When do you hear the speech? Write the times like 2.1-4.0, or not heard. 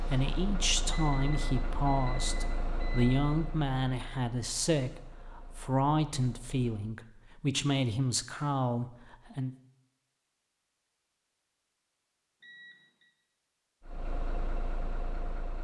0.1-9.5.